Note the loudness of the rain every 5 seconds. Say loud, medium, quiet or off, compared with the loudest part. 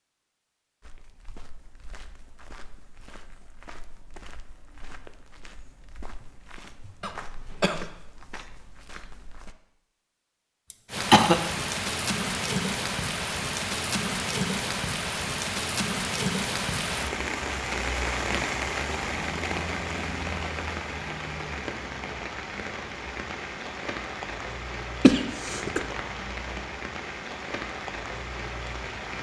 off, off, loud, loud, medium, medium.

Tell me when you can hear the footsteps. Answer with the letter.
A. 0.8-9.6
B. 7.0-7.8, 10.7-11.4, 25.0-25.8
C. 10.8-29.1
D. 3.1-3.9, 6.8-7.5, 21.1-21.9
A.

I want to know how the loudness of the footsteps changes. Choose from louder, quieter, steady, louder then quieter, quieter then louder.
louder.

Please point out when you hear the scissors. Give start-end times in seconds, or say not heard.
not heard.